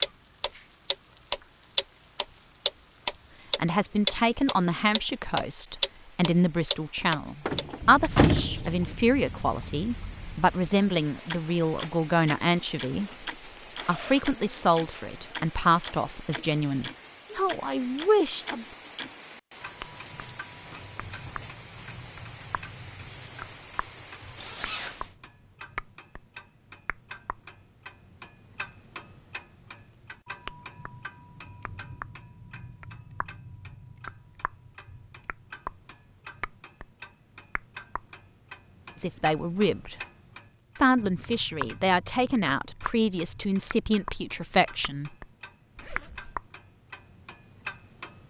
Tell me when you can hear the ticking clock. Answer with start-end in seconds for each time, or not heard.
0.0-48.2.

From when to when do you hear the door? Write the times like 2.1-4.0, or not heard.
7.5-8.9.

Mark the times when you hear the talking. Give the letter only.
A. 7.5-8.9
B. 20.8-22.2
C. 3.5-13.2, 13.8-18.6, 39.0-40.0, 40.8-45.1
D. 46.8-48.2
C.